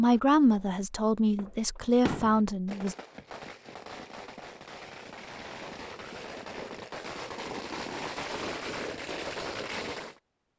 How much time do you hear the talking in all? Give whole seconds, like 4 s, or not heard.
3 s.